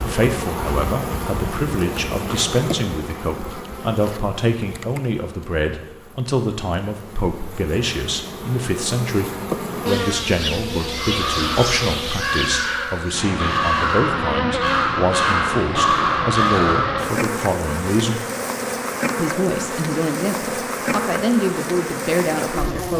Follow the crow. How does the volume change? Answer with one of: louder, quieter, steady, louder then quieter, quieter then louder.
louder.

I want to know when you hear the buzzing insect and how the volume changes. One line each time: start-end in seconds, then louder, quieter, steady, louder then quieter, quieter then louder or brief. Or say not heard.
0.0-22.9 quieter then louder.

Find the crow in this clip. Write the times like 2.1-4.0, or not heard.
10.9-17.2.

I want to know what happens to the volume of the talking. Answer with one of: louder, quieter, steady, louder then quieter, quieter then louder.
steady.